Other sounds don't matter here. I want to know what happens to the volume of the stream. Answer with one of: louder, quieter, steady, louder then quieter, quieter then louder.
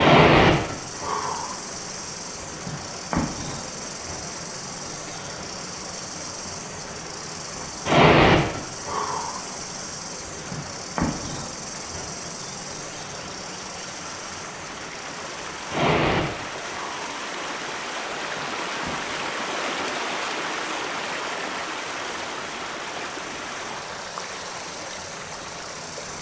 louder.